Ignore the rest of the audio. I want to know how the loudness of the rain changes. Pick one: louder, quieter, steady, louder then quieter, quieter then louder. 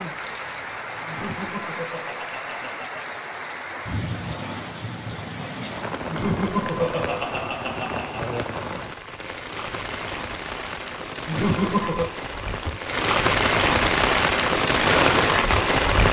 louder.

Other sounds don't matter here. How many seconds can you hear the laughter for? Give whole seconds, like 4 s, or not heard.
5 s.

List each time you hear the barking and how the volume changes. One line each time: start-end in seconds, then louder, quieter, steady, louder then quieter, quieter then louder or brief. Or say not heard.
not heard.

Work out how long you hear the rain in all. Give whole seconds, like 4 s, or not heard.
16 s.